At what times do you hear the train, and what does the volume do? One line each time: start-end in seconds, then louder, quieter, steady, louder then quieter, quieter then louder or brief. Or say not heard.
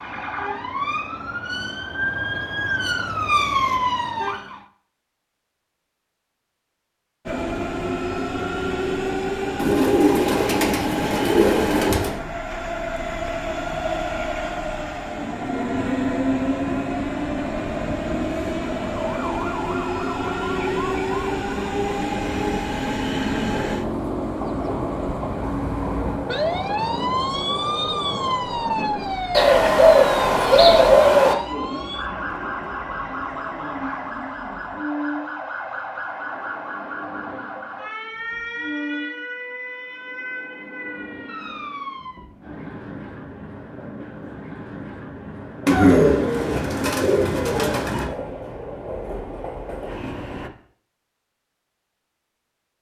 7.2-50.5 quieter.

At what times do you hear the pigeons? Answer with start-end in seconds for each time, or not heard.
9.6-12.2, 29.3-31.4, 45.6-48.1.